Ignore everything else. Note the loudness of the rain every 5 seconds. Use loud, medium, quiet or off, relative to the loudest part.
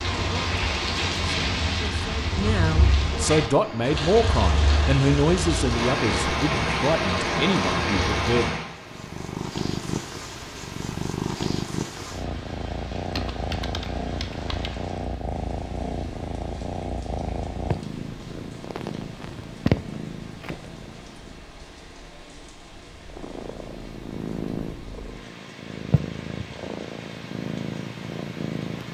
loud, loud, quiet, quiet, quiet, quiet.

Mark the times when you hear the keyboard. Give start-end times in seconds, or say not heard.
13.2-14.7.